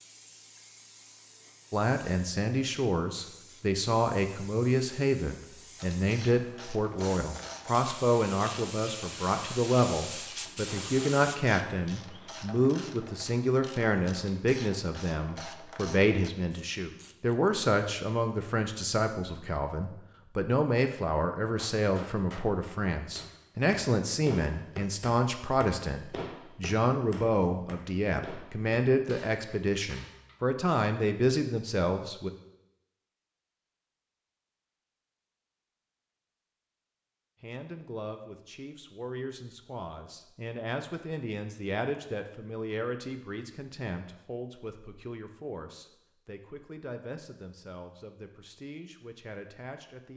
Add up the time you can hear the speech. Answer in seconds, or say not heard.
43 s.